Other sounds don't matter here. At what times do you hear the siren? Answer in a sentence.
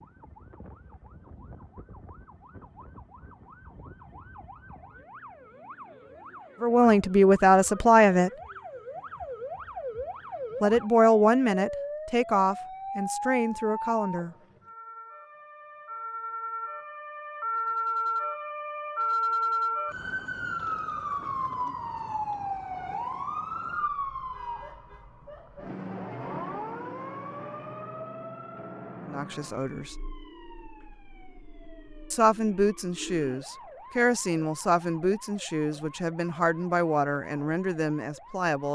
The siren can be heard from 0.0 to 38.7 s.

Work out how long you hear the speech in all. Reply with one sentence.
You can hear the speech for 13 seconds altogether.